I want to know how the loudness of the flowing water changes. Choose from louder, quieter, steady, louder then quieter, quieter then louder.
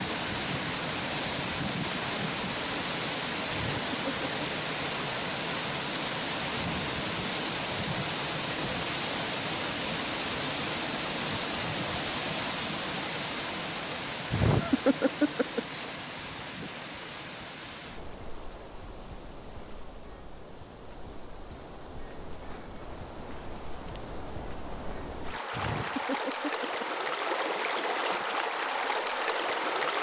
quieter then louder.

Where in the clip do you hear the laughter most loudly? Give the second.
15 s.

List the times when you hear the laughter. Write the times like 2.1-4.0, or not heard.
3.5-4.2, 14.3-15.8, 25.5-27.1.